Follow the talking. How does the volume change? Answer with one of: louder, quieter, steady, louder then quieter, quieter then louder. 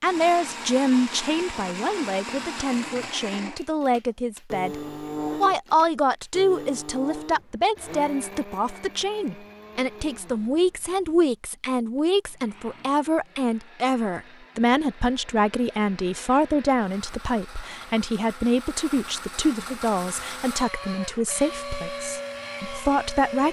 steady.